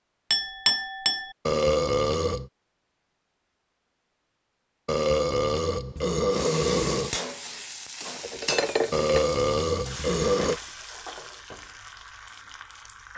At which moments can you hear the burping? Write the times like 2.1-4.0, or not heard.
1.4-2.5, 4.8-7.1, 8.9-10.6.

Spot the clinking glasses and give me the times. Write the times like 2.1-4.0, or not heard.
0.3-1.3, 8.2-9.2.